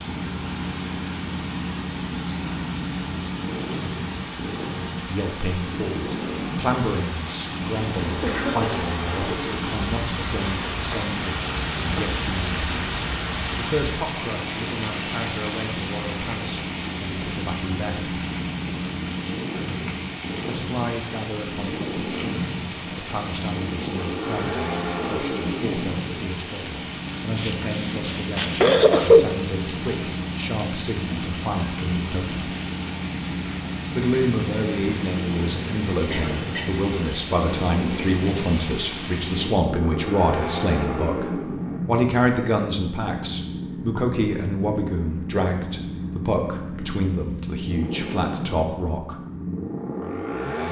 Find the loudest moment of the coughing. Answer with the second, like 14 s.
29 s.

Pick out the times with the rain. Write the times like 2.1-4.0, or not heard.
0.0-39.6.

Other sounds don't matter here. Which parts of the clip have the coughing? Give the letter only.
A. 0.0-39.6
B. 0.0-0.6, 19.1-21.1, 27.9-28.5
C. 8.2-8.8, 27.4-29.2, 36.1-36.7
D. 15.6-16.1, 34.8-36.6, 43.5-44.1
C.